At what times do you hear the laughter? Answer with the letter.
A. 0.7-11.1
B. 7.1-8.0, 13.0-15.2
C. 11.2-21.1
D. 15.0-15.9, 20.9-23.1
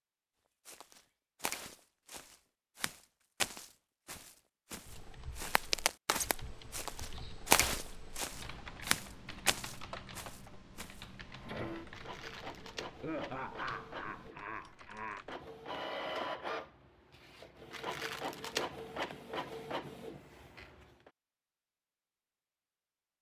B.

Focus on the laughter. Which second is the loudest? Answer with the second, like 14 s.
13 s.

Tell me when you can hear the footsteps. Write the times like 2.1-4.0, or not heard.
0.7-11.1.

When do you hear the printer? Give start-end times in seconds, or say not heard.
11.2-21.1.